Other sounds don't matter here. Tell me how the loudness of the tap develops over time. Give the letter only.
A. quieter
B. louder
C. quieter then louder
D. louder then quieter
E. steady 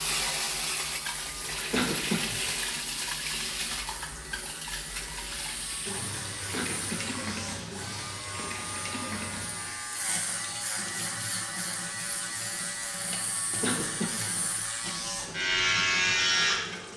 A.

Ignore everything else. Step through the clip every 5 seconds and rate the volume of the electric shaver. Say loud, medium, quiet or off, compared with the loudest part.
quiet, quiet, medium, loud.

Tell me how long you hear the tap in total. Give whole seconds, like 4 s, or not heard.
17 s.